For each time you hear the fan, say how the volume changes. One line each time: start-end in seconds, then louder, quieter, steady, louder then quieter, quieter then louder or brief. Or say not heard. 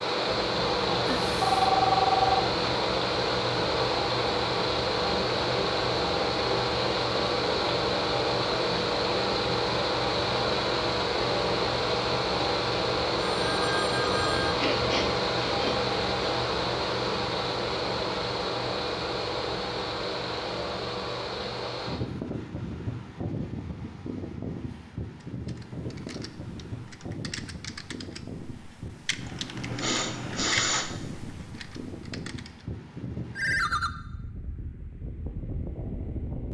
0.0-36.5 quieter.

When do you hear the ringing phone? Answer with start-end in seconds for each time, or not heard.
1.1-2.5, 13.3-14.6, 33.4-33.9.